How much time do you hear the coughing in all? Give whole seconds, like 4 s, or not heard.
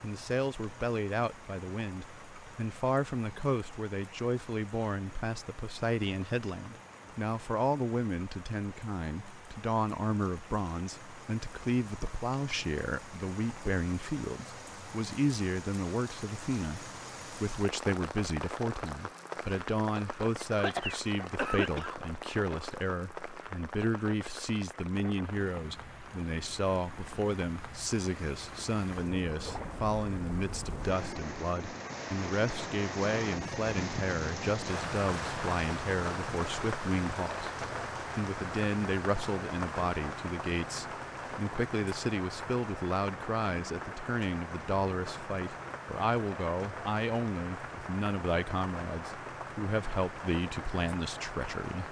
2 s.